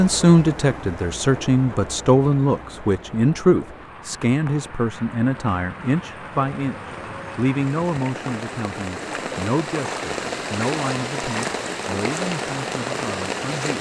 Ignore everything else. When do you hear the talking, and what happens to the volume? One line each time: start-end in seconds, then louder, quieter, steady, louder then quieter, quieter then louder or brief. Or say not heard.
0.0-13.7 quieter.